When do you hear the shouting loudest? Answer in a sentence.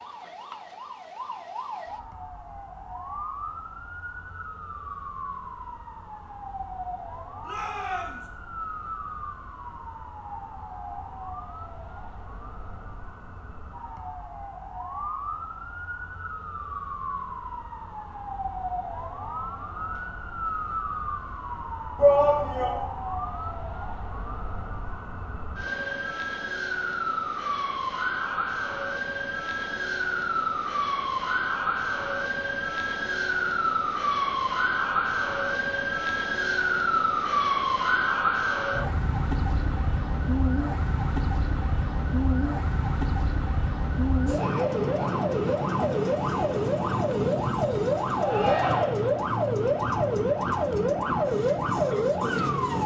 The volume of the shouting peaks at 22 seconds.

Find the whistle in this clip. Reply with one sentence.
You can't hear the whistle here.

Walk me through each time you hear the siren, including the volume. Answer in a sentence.
The siren can be heard from 0.0 to 52.8 s, getting louder.